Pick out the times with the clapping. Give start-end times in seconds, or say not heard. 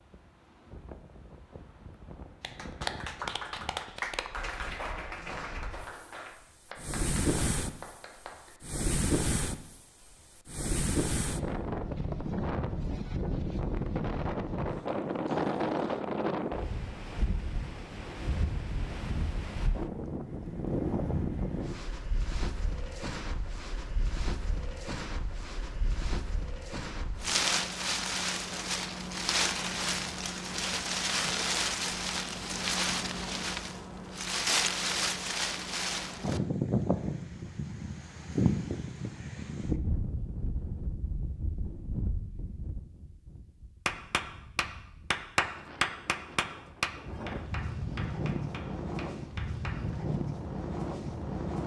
2.4-8.5, 43.9-49.8.